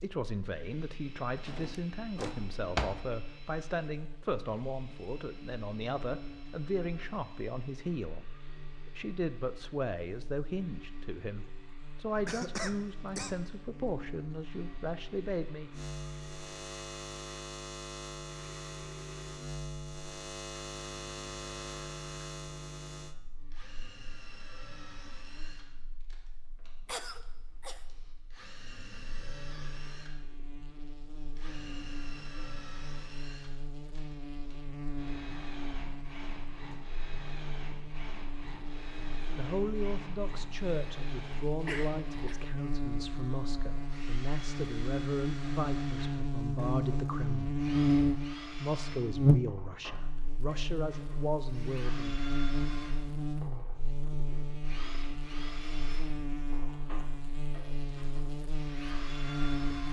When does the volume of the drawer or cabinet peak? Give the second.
3 s.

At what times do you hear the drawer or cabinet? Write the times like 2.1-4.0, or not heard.
1.4-3.0.